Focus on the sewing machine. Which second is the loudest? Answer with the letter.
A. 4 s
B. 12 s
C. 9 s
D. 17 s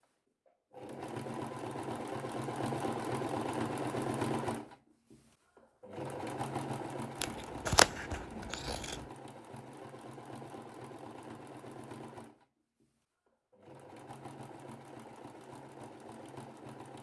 A.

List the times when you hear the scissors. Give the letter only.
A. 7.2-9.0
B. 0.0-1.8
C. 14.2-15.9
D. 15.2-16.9
A.